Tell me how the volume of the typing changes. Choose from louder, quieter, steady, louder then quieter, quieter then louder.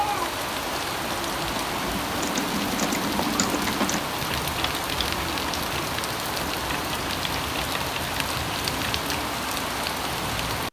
quieter.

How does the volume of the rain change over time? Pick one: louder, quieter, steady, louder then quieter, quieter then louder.
steady.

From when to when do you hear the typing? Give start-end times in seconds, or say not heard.
1.4-9.3.